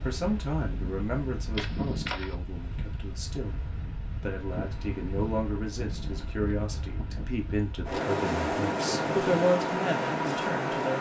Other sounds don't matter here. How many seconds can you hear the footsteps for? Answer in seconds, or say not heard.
not heard.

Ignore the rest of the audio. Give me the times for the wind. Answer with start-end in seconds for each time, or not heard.
0.0-10.9.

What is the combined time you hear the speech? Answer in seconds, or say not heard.
11 s.